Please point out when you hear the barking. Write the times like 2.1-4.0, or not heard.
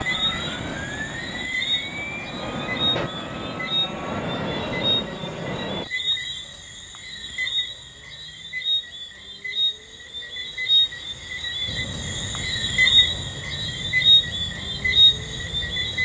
not heard.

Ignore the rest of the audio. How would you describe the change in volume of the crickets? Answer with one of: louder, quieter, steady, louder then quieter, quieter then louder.
louder.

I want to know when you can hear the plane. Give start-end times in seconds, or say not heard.
0.0-5.8, 11.7-16.0.